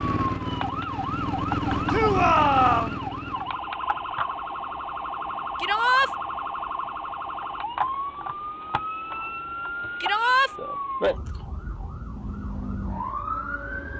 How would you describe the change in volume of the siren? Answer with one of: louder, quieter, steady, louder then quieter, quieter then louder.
steady.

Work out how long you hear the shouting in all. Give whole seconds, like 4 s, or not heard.
2 s.